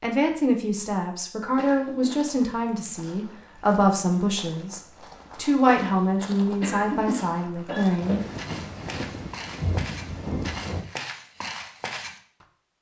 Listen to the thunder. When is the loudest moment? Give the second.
10 s.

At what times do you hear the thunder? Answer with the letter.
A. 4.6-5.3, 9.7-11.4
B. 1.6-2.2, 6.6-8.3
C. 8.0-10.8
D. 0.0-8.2
C.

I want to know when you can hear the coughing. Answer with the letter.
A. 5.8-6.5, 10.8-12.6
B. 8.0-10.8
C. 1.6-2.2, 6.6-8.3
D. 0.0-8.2
C.